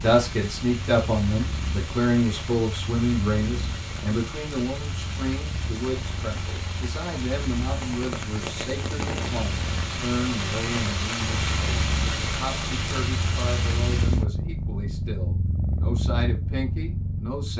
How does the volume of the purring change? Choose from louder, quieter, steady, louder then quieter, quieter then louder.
louder.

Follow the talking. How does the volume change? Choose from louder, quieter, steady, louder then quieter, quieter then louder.
quieter.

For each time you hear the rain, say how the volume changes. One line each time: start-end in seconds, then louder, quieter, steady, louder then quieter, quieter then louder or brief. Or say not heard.
0.0-14.2 louder.